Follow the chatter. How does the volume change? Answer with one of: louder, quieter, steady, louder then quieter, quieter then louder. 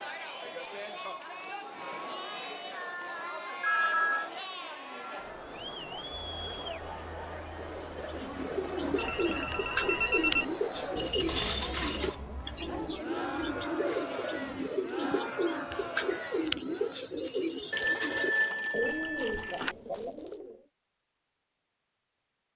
steady.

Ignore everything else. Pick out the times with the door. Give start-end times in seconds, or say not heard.
not heard.